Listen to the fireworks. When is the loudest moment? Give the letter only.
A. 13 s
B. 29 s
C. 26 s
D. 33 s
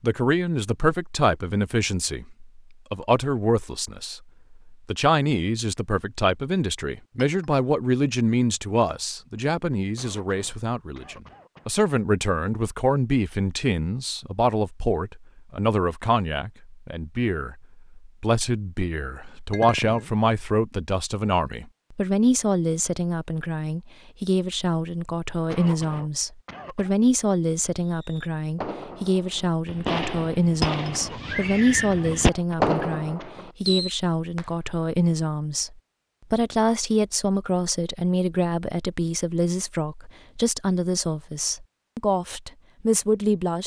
D.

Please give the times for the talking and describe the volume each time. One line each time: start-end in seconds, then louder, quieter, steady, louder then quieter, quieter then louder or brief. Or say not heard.
0.0-43.6 steady.